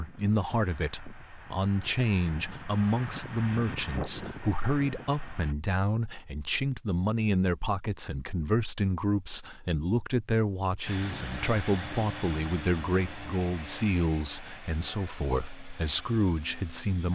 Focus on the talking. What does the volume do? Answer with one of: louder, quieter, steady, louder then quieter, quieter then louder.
steady.